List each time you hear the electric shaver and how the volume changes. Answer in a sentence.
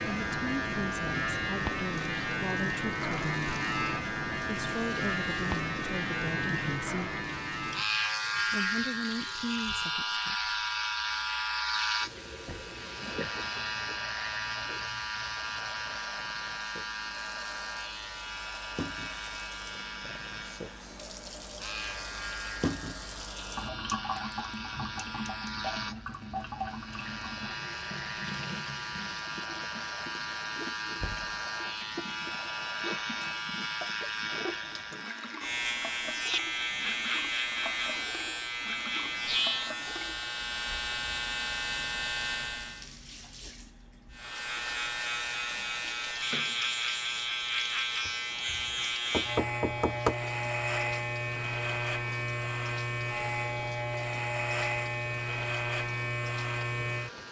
The electric shaver can be heard from 0.0 to 42.9 s, getting quieter then louder; and from 44.1 to 57.2 s, at a steady volume.